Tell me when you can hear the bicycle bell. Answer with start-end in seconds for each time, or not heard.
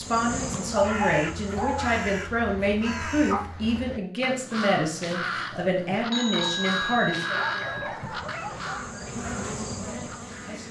6.1-7.9.